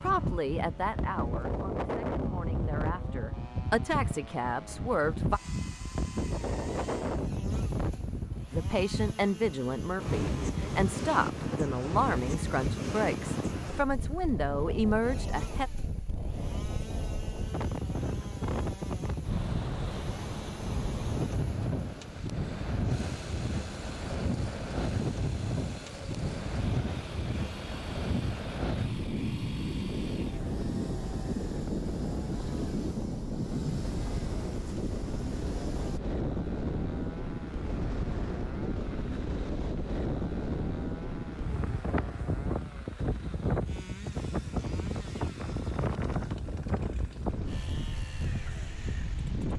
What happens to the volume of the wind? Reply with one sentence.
The loudness of the wind stays about the same.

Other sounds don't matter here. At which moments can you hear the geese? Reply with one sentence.
You can't hear the geese here.